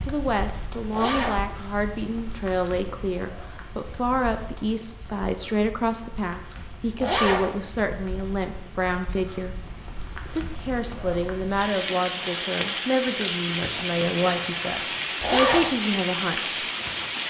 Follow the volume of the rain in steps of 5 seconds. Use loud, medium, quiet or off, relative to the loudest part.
quiet, quiet, loud, loud.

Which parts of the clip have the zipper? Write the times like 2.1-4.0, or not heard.
0.9-1.4, 7.0-7.5, 15.2-15.7.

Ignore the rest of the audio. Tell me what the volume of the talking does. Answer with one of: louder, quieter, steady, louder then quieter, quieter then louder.
steady.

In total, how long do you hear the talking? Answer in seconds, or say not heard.
16 s.